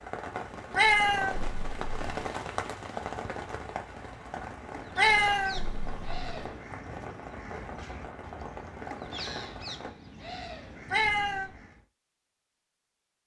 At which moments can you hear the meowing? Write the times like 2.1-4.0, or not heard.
0.8-2.2, 5.0-6.5, 10.9-11.6.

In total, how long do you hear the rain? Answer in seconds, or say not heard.
10 s.